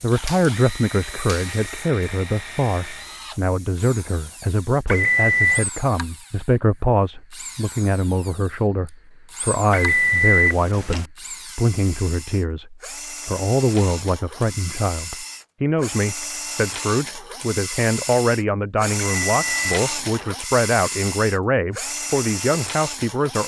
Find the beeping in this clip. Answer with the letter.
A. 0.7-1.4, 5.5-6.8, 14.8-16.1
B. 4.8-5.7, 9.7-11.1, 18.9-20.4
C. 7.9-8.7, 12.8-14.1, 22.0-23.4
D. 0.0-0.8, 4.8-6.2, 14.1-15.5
B.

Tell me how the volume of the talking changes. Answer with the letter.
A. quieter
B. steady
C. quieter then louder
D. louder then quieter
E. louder
B.